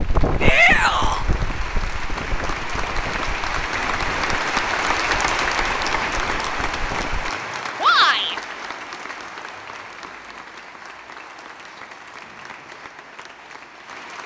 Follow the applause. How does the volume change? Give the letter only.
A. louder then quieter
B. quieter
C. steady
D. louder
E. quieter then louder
A.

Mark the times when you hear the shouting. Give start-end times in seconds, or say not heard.
0.4-1.2, 7.8-8.3.